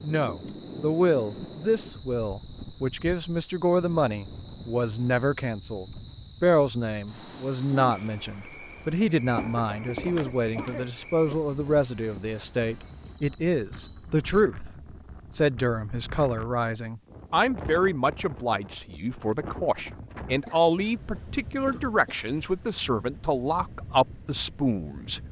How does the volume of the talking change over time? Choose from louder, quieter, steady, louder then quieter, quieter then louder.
steady.